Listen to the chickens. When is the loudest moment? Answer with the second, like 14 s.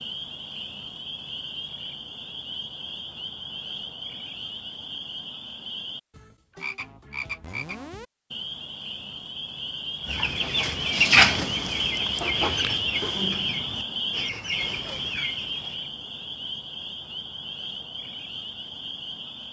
11 s.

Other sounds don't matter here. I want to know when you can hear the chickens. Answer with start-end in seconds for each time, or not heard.
10.1-15.8.